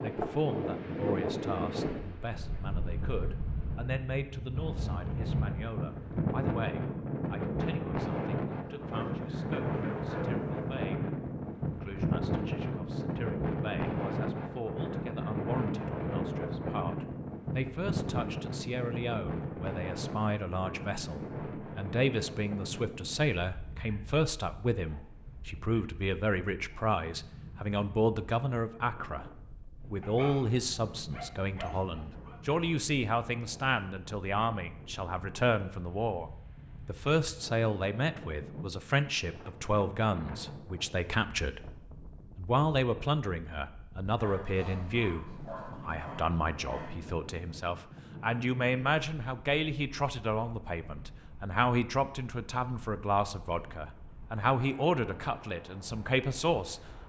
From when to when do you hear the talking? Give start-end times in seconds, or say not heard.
0.0-56.8.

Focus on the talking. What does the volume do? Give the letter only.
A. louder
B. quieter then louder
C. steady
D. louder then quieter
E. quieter
A.